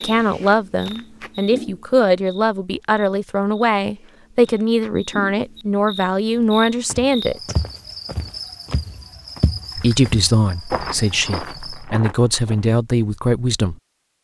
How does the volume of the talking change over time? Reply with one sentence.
The volume of the talking stays about the same.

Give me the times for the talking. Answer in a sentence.
You can hear the talking from 0.0 to 7.5 s and from 9.8 to 13.8 s.